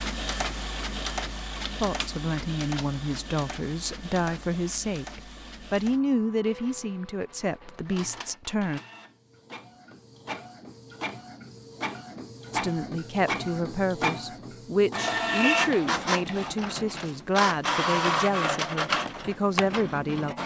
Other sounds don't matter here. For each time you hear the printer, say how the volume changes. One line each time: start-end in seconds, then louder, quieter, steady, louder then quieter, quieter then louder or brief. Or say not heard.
0.0-20.4 quieter then louder.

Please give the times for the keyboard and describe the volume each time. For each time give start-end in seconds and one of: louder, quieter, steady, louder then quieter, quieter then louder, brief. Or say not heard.
not heard.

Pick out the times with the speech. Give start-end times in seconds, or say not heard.
1.8-8.8, 12.5-20.4.